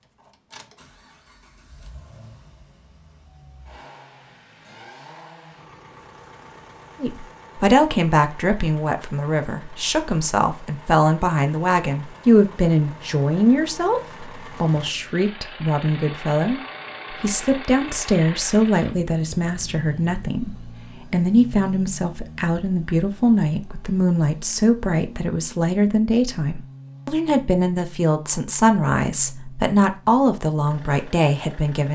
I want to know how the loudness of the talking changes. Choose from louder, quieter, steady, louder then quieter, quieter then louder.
steady.